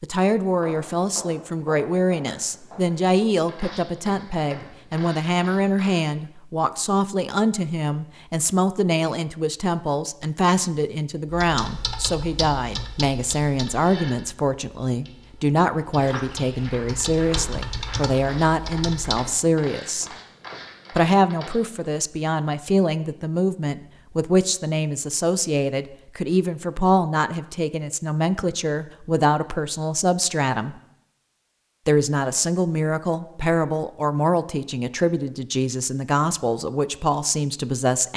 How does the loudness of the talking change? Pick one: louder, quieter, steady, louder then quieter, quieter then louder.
steady.